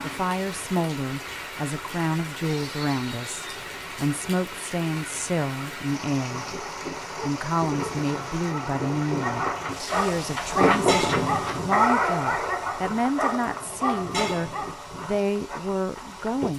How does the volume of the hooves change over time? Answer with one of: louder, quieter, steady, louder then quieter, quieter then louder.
louder then quieter.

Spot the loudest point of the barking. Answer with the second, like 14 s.
12 s.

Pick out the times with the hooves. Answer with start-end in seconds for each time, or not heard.
6.2-16.5.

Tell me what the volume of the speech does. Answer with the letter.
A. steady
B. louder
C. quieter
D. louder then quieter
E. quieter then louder
A.